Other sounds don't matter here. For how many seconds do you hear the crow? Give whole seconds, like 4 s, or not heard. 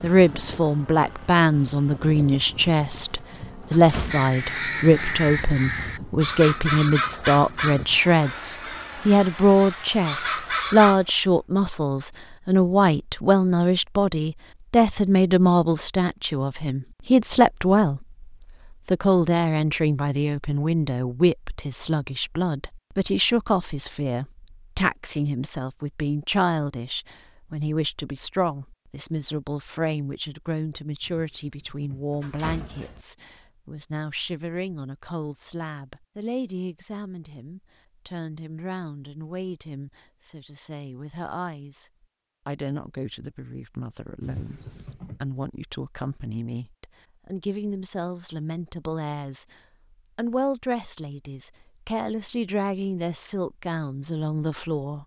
7 s.